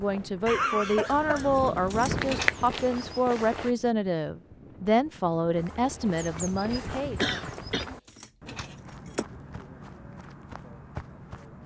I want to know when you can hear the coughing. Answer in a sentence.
You can hear the coughing from 0.5 to 1.7 s and from 7.2 to 7.8 s.